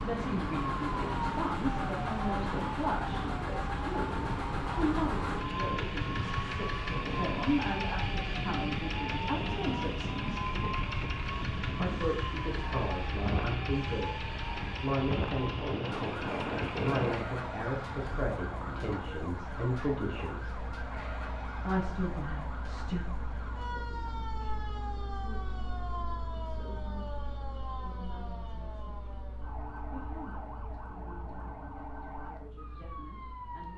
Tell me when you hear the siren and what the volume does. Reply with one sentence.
The siren can be heard from 0.0 to 33.7 s, getting quieter.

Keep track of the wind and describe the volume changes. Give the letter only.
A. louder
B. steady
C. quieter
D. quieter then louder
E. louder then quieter
B.